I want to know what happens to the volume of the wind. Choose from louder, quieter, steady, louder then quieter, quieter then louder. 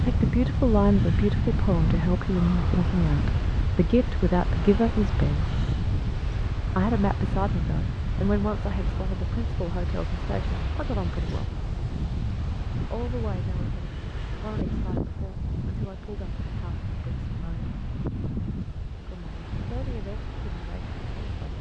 quieter.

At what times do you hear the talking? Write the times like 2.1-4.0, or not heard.
0.0-5.5, 6.7-11.6, 12.8-17.7, 19.1-21.5.